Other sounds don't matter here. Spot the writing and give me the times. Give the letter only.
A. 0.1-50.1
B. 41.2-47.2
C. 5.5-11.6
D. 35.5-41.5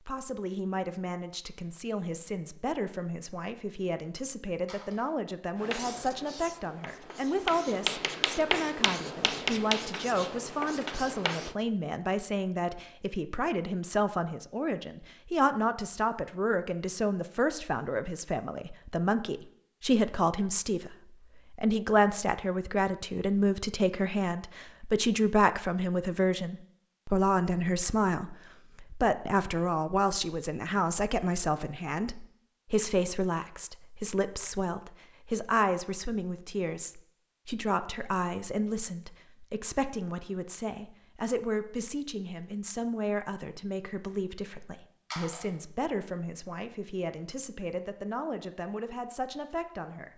C.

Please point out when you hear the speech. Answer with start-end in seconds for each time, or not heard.
0.1-50.1.